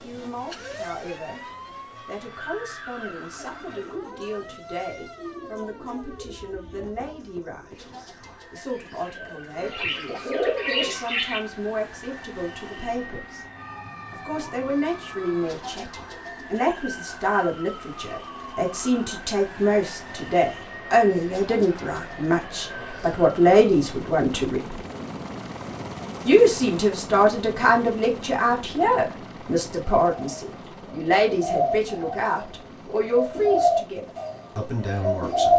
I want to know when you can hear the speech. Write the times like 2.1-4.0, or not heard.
0.0-1.4, 2.0-13.4, 14.1-24.8, 26.2-35.5.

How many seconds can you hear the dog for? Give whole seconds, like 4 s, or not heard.
not heard.